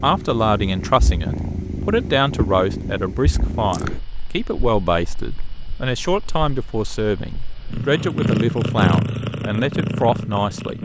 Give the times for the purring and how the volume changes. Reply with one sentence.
The purring can be heard from 0.0 to 10.7 s, getting quieter then louder.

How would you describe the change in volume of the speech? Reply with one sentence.
The volume of the speech stays about the same.